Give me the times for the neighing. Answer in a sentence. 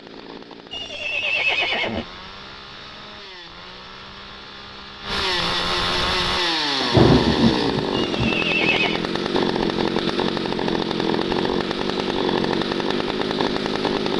The neighing can be heard from 0.7 to 2.0 s and from 7.9 to 9.1 s.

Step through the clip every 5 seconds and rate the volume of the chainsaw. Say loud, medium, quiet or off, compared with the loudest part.
quiet, loud, loud.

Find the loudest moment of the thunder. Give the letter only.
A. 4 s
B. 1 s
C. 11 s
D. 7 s
D.